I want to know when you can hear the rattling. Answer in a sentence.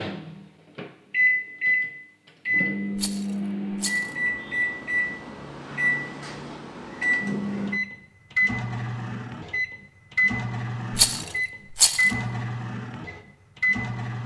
The rattling can be heard from 3.0 to 4.2 s and from 10.9 to 12.1 s.